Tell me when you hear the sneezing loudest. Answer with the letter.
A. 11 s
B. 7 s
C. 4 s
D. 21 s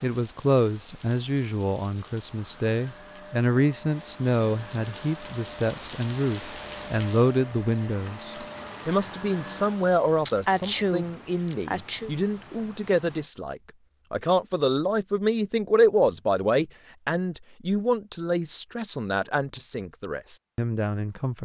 A.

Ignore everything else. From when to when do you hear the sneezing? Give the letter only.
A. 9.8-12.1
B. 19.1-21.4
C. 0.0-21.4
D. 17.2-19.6
A.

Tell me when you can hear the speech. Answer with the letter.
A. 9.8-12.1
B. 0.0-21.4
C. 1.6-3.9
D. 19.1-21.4
B.